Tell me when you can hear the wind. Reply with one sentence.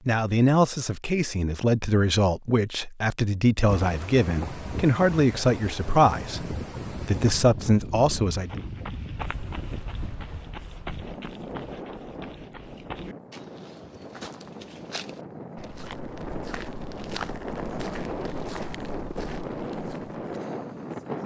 The wind can be heard from 3.6 to 21.2 s.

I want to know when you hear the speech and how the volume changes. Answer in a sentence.
You can hear the speech from 0.1 to 8.5 s, at a steady volume.